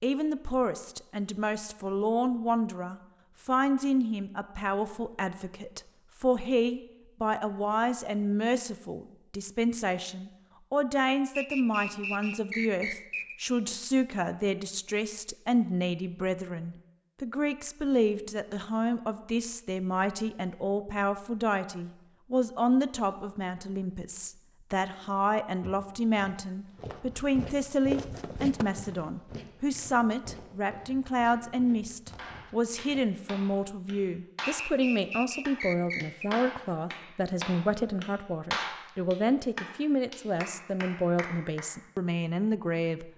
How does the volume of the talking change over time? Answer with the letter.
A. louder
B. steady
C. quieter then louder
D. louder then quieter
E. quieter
B.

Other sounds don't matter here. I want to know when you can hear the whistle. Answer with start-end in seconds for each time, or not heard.
11.3-13.3, 34.4-36.3.